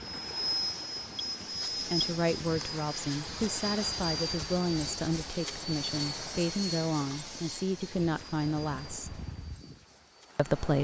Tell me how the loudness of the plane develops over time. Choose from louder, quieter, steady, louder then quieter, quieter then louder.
quieter.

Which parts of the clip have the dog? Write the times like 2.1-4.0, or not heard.
not heard.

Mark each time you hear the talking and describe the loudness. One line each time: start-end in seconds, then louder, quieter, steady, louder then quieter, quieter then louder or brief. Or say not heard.
1.9-9.2 steady
10.3-10.8 brief.